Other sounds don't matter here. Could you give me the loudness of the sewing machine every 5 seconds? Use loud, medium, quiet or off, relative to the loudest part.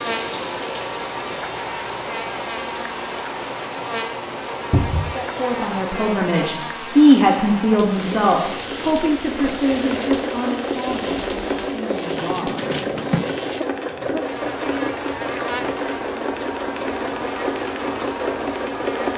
medium, medium, loud, loud.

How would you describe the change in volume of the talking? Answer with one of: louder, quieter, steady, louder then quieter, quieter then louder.
louder then quieter.